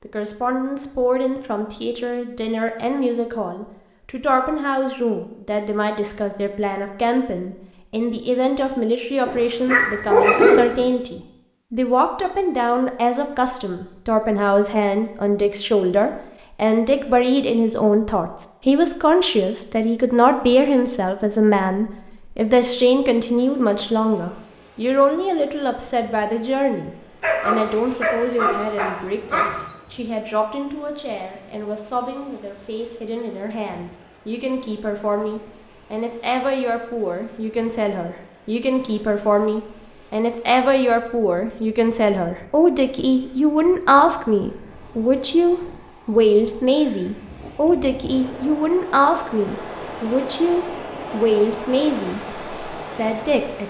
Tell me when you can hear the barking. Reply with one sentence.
The barking can be heard from 9.2 to 10.8 s and from 27.2 to 29.6 s.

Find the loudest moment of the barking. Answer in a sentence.
The volume of the barking peaks at 10 seconds.